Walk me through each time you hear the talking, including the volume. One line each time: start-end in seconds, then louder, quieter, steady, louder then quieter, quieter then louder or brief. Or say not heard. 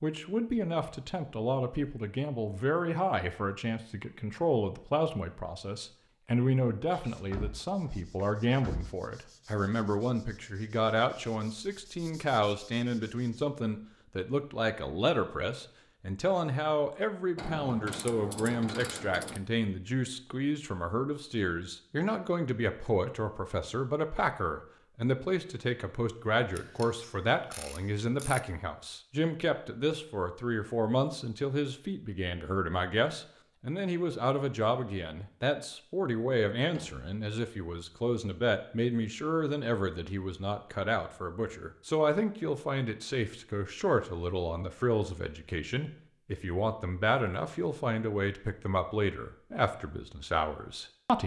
0.0-51.2 steady.